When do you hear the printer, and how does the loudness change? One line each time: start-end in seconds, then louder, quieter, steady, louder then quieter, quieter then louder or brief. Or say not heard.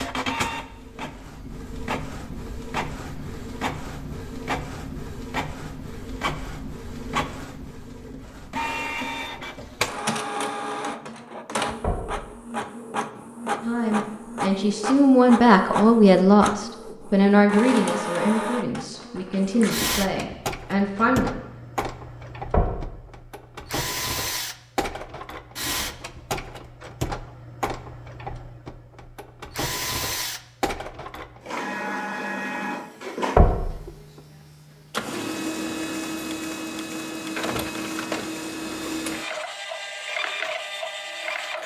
0.0-41.6 steady.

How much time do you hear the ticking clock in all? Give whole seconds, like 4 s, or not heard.
not heard.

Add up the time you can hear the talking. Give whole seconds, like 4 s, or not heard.
8 s.